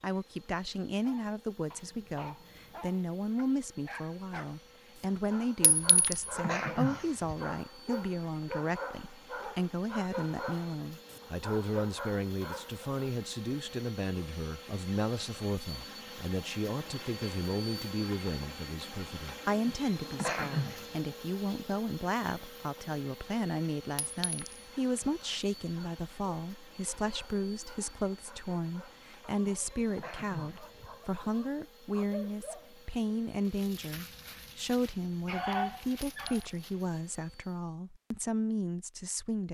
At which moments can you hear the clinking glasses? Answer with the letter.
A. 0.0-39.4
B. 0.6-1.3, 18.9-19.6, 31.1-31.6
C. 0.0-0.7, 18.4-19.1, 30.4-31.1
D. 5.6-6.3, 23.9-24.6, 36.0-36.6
D.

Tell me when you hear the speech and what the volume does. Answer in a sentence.
The speech can be heard from 0.0 to 39.4 s, at a steady volume.